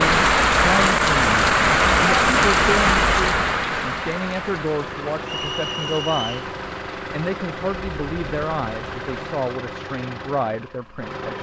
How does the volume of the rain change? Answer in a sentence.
The loudness of the rain goes down.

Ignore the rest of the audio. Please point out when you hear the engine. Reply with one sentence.
You can hear the engine from 4.5 to 11.3 s.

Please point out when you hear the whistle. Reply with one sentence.
You can hear the whistle from 5.2 to 6.3 s.